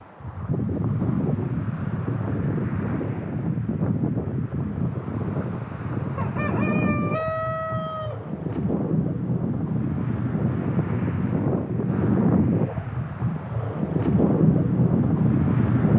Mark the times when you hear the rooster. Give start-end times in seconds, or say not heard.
6.2-8.2.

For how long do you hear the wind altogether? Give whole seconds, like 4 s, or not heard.
16 s.